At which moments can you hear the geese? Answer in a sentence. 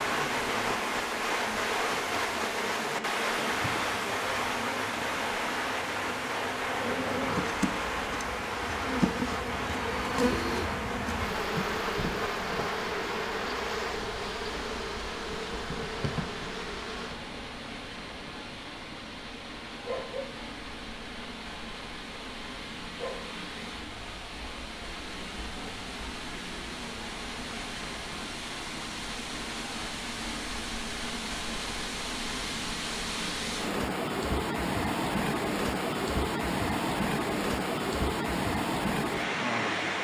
You can't hear the geese here.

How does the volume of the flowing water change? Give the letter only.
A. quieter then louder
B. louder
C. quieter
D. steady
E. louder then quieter
A.